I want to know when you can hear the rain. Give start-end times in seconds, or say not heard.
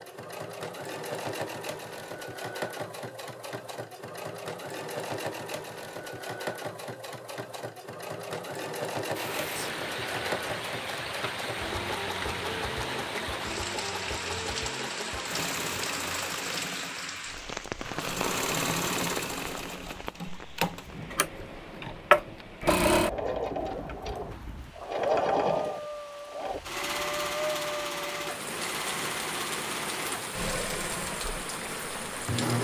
9.2-32.6.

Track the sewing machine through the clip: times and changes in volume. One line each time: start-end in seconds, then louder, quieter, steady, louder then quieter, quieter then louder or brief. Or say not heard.
0.0-32.6 louder then quieter.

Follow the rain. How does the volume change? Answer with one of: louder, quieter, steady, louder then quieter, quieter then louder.
quieter then louder.